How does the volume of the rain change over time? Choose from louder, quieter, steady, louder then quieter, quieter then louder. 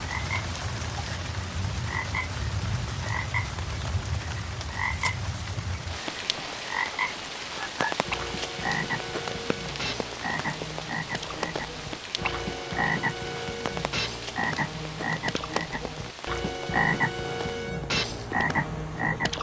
quieter.